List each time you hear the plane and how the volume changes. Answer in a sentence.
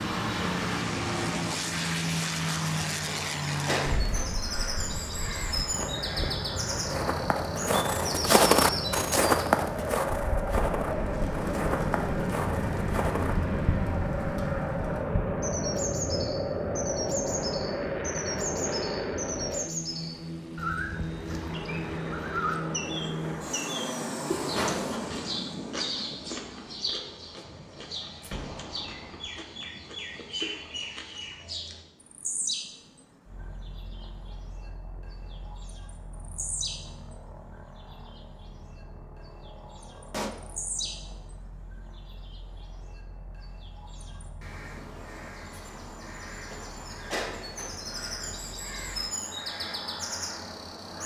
You can hear the plane from 0.0 to 51.0 s, getting quieter.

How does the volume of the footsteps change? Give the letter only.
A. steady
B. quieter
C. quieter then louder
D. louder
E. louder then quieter
E.